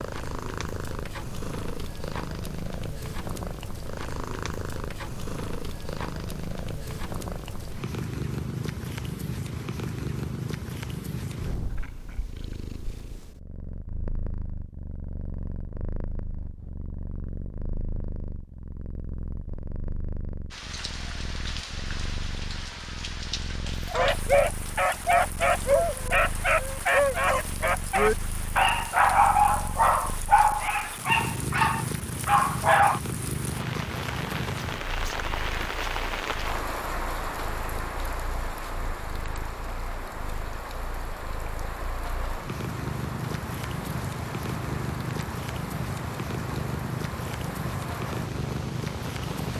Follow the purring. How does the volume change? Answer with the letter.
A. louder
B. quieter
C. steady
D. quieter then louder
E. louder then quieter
D.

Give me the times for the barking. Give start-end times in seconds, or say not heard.
23.9-33.0.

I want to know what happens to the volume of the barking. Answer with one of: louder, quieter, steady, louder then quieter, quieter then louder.
steady.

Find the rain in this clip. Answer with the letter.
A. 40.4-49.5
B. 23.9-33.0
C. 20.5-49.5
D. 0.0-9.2
C.